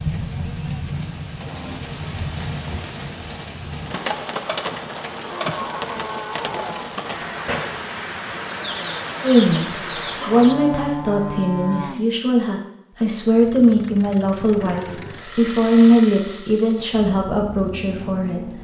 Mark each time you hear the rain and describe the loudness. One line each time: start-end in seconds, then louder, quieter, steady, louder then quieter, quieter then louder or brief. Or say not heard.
0.0-10.7 steady.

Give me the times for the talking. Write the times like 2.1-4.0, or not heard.
9.2-18.5.